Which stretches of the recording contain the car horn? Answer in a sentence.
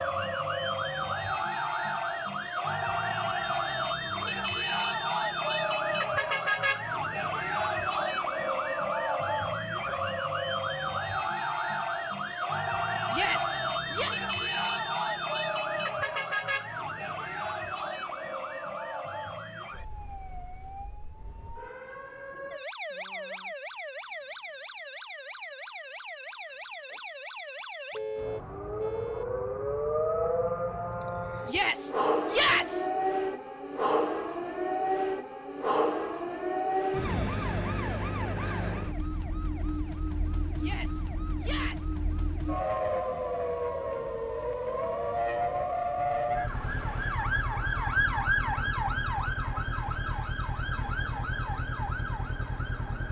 You can hear the car horn from 27.9 to 29.2 s.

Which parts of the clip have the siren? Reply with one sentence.
The siren can be heard from 0.0 to 53.0 s.